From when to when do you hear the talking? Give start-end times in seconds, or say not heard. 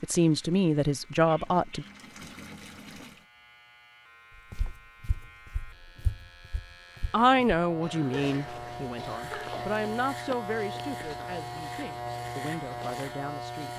0.0-1.9, 7.1-13.7.